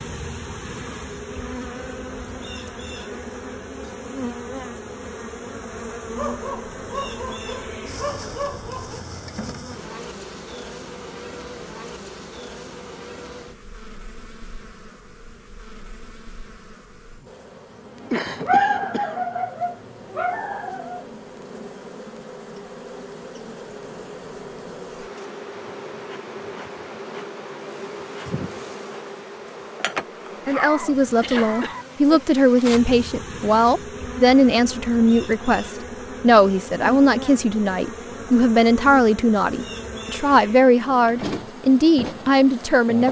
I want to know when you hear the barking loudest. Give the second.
19 s.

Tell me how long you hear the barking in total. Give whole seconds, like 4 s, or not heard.
7 s.